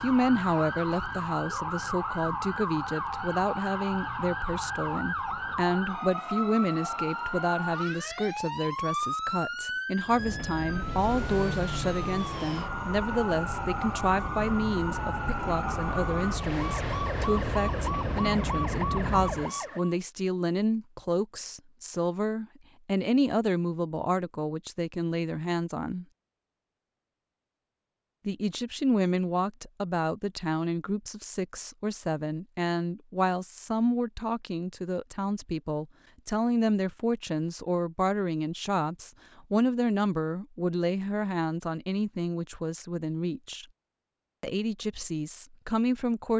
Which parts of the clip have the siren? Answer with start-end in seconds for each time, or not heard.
0.0-19.9.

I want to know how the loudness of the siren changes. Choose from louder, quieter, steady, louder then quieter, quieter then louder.
steady.